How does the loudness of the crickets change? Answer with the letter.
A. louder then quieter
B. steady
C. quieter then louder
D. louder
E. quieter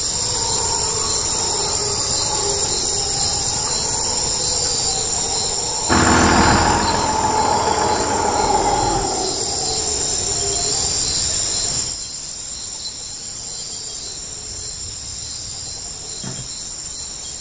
E.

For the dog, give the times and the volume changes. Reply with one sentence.
The dog can't be heard in this clip.